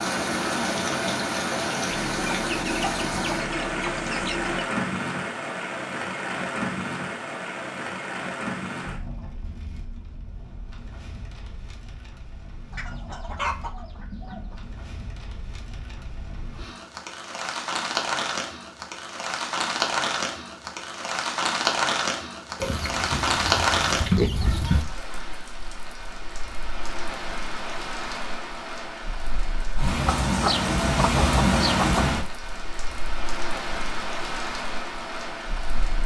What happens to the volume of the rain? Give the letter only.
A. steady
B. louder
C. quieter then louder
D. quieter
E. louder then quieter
C.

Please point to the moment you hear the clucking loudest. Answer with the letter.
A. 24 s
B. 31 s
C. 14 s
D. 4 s
A.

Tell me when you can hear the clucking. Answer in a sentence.
You can hear the clucking from 1.9 to 4.7 s, from 12.7 to 14.7 s, from 22.6 to 24.9 s and from 30.1 to 32.0 s.